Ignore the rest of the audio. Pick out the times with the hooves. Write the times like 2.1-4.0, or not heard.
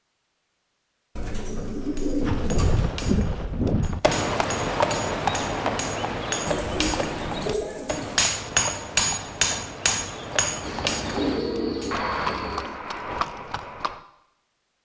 2.2-14.0.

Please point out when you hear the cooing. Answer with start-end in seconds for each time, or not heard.
1.1-3.0, 6.5-8.2, 10.6-12.6.